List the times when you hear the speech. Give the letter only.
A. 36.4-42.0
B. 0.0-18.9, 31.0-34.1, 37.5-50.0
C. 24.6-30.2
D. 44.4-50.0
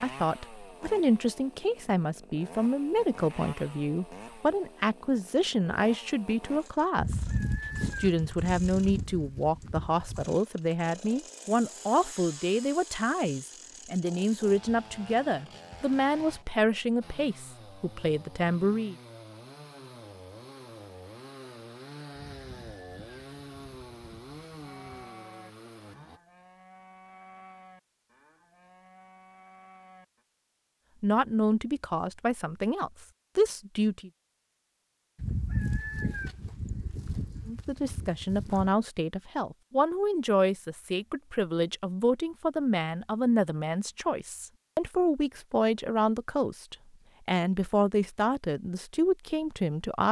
B.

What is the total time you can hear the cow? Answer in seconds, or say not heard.
6 s.